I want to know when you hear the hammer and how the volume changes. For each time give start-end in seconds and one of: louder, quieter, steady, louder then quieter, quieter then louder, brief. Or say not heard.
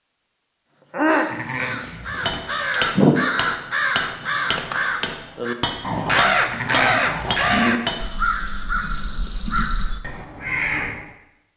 2.2-8.1 steady.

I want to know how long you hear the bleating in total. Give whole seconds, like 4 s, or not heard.
2 s.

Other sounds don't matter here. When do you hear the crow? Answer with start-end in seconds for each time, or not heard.
0.9-11.1.